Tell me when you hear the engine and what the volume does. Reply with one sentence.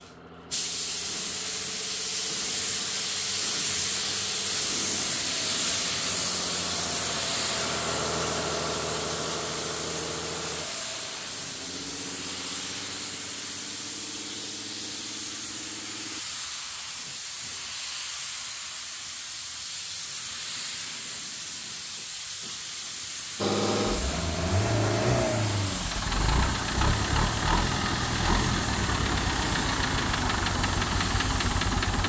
You can hear the engine from 0.0 to 16.2 s, getting louder then quieter; and from 23.4 to 32.0 s, at a steady volume.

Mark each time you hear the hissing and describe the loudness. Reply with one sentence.
You can hear the hissing from 0.0 to 32.0 s, getting quieter.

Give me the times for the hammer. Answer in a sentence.
The hammer can't be heard in this clip.